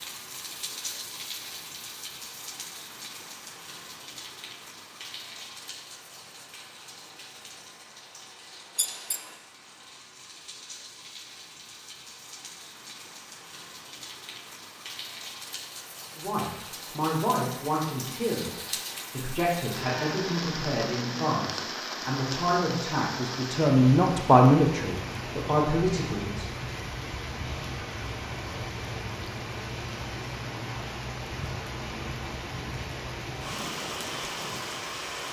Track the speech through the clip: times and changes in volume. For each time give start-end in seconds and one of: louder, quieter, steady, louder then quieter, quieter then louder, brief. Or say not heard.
16.1-26.4 louder.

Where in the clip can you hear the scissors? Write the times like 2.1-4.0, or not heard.
8.8-9.3.